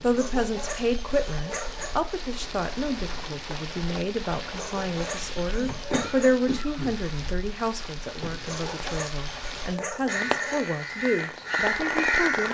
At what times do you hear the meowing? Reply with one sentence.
You can't hear the meowing here.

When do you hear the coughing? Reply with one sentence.
The coughing can be heard from 5.9 to 7.0 s.